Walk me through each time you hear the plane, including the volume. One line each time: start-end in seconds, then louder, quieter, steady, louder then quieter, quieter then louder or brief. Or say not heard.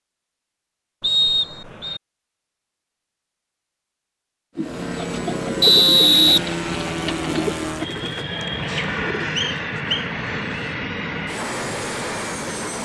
4.5-12.8 steady.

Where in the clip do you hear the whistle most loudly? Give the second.
6 s.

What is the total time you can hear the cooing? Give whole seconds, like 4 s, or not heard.
5 s.